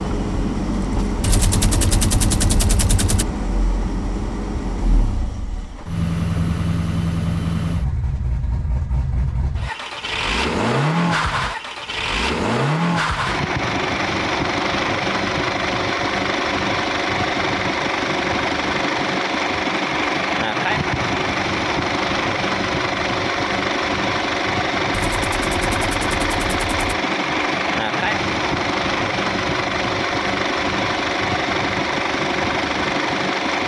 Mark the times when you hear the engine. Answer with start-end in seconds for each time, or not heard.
0.0-33.6.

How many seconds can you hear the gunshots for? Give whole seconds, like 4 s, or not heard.
4 s.